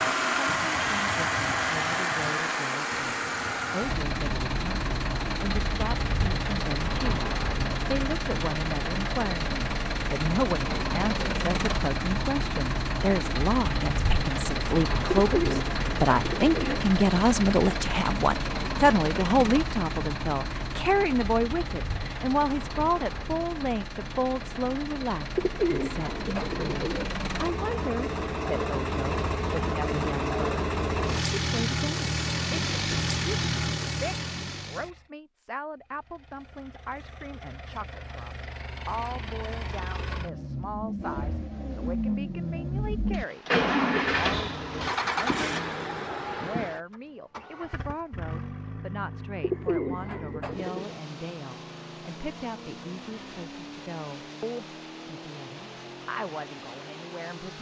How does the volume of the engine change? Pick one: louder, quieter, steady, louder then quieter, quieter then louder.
quieter.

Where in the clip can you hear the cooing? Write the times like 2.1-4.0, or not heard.
15.2-16.9, 25.4-27.1, 49.4-51.0.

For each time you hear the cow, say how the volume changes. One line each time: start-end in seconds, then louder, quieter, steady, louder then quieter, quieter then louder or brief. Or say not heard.
not heard.